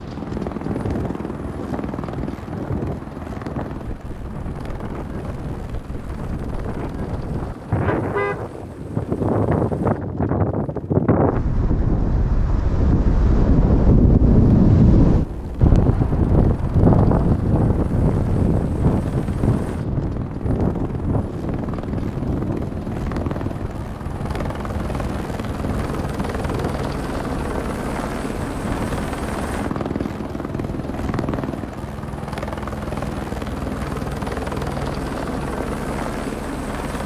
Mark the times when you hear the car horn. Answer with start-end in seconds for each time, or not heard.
7.8-8.4.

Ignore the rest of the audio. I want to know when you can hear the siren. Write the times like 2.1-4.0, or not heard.
not heard.